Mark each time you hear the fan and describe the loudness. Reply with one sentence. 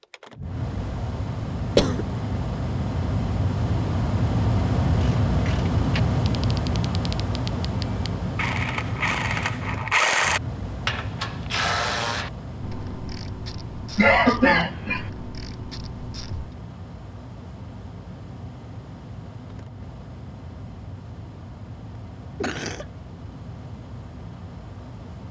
The fan can be heard from 0.0 to 25.2 s, getting quieter.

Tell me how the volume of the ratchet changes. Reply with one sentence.
The volume of the ratchet goes up, then down.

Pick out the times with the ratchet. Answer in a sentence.
You can hear the ratchet from 4.9 to 16.6 s.